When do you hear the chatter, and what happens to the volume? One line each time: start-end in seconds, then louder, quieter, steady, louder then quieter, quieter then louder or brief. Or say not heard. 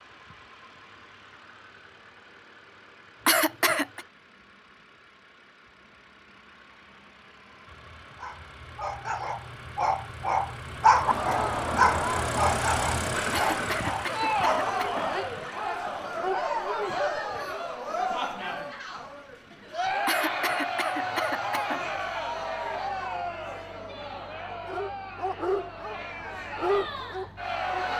10.8-27.9 quieter.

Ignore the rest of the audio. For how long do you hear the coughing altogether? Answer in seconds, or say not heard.
5 s.